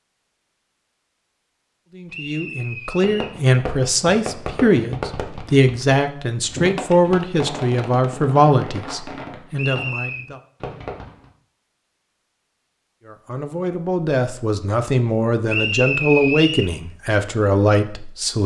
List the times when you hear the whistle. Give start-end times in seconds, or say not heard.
2.0-3.4, 9.6-10.2, 15.4-16.6.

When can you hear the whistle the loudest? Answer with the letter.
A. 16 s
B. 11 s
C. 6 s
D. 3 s
A.